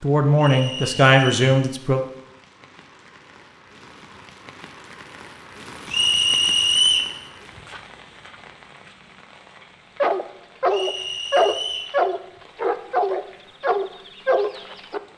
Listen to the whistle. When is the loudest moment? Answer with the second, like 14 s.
7 s.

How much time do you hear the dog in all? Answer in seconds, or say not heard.
5 s.